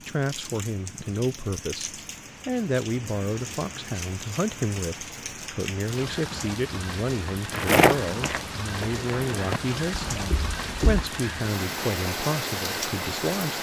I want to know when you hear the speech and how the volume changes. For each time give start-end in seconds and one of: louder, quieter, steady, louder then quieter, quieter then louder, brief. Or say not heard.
0.1-13.5 steady.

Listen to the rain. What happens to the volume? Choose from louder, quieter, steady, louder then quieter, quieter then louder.
louder.